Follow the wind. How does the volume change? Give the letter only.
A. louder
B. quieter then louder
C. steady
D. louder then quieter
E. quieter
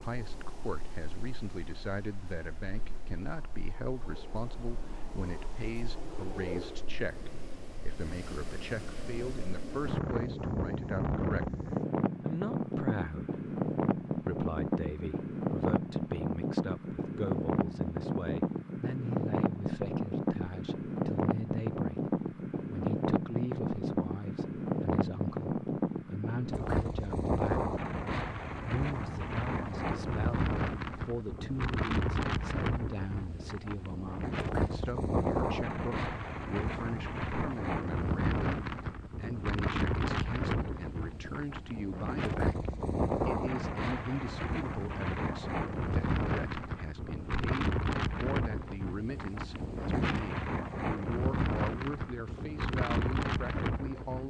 A.